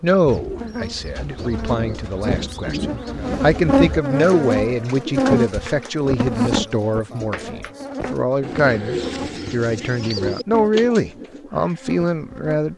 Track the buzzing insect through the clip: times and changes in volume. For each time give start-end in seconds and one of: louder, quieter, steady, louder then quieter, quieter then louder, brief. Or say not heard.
0.0-12.7 louder then quieter.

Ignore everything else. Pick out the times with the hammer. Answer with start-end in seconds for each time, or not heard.
not heard.